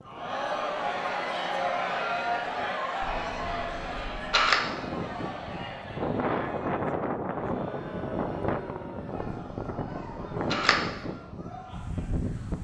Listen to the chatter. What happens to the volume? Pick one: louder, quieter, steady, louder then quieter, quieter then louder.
quieter.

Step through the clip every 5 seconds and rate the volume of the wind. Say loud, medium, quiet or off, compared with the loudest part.
medium, loud, loud.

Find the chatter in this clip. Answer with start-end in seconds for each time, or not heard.
0.0-12.5.